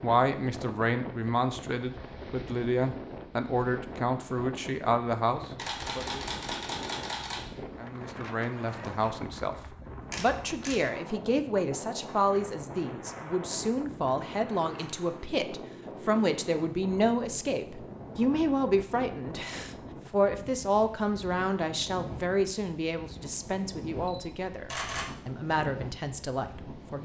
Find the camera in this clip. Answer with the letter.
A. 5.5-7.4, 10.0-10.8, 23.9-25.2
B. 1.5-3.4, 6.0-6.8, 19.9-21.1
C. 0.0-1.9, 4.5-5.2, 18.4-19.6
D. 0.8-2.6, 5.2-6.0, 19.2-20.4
A.